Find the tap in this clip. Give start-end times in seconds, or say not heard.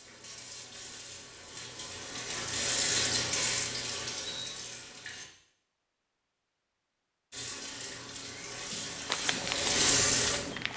0.0-5.2, 7.3-10.7.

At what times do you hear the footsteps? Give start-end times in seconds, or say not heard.
8.7-10.7.